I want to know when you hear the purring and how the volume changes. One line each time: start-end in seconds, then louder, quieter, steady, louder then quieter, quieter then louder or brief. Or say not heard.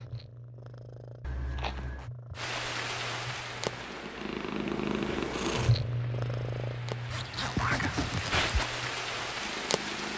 0.0-10.1 louder then quieter.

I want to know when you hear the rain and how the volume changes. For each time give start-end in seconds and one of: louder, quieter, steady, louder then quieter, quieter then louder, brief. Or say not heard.
2.4-10.1 quieter then louder.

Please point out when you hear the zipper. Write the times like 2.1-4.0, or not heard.
1.2-2.1, 7.1-8.7.